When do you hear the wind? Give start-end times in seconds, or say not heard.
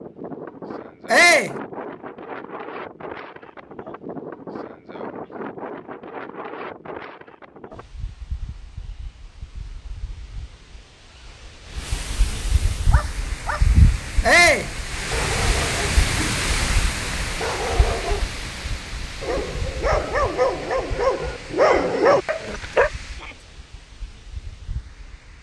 0.0-25.3.